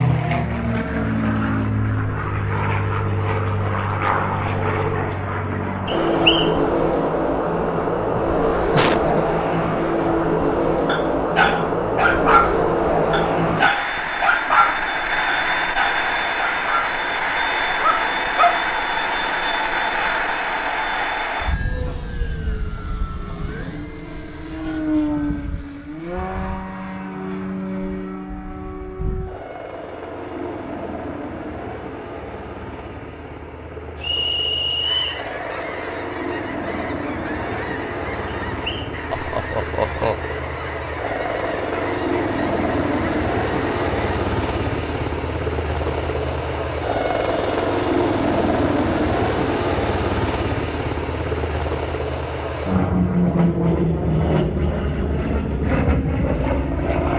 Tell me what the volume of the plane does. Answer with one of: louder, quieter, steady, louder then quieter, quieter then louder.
quieter then louder.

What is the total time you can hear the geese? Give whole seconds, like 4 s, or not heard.
9 s.